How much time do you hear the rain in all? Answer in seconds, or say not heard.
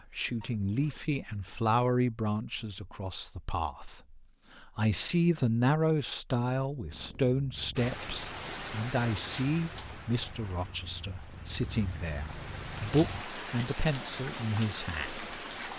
8 s.